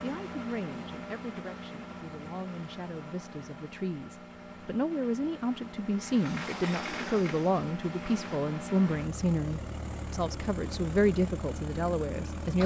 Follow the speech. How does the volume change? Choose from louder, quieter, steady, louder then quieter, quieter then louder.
louder.